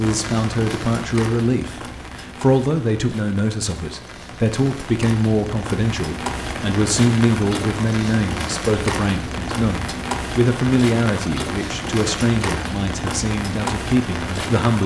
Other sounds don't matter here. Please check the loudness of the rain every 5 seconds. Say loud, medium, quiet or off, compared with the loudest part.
medium, loud, loud.